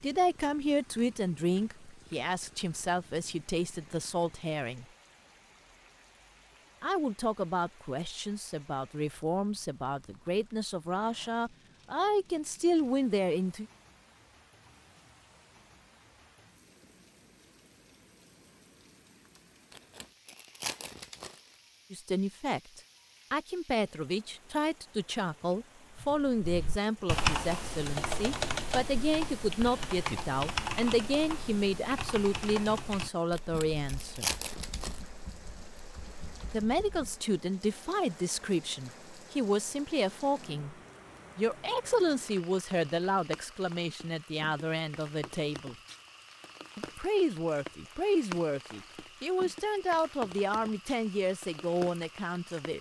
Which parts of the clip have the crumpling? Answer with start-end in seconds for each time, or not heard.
19.7-21.4, 33.3-35.0.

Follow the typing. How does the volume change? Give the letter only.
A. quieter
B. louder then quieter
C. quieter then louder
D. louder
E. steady
A.